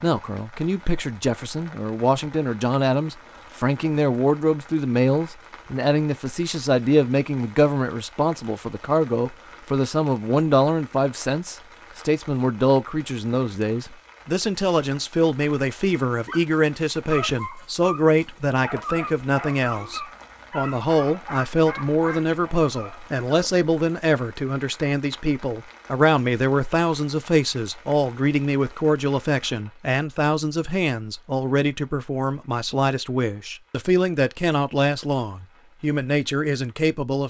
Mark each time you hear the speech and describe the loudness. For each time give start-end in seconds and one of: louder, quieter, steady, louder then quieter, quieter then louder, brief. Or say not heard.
0.0-37.2 steady.